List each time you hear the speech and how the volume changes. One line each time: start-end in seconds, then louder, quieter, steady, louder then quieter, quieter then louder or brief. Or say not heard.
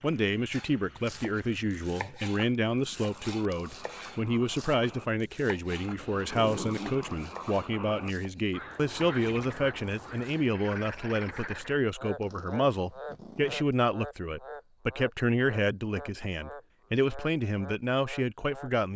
0.0-18.9 steady.